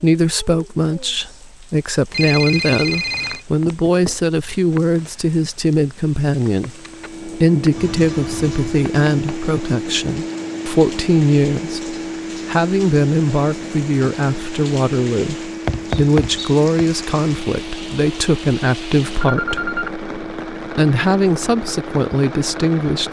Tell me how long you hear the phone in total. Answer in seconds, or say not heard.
3 s.